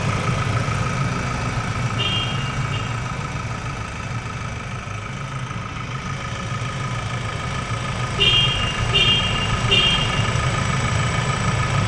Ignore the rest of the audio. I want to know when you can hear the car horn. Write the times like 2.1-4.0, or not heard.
1.9-2.8, 8.2-10.2.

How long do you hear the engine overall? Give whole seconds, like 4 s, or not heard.
12 s.